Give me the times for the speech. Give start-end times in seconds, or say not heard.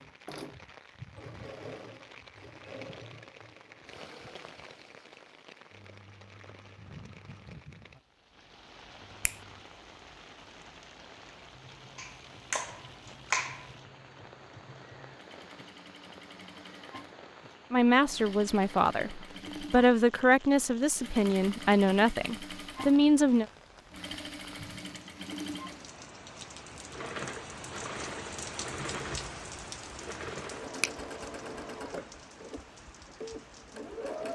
17.7-23.4.